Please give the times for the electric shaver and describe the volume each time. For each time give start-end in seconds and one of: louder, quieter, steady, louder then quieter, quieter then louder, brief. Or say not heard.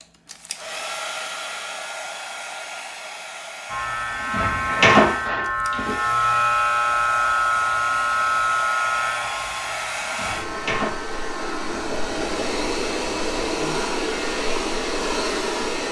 3.7-15.8 quieter.